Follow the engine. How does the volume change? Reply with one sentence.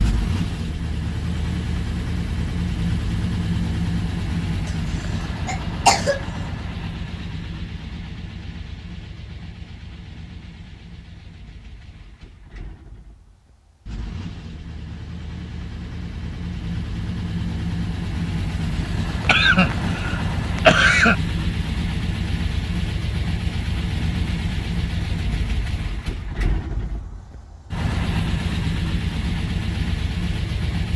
The loudness of the engine goes down, then up.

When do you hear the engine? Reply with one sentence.
The engine can be heard from 0.0 to 30.9 s.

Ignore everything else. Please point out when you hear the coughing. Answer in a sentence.
You can hear the coughing from 5.5 to 6.2 s and from 19.2 to 21.1 s.